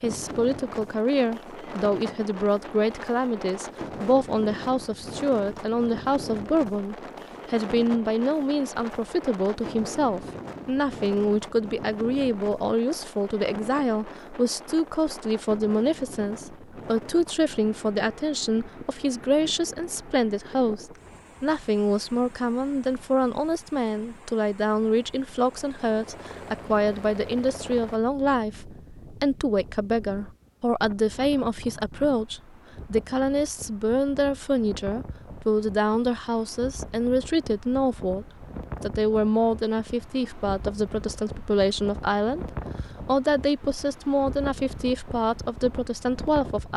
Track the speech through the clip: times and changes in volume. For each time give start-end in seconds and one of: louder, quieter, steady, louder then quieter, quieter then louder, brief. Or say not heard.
0.0-46.7 steady.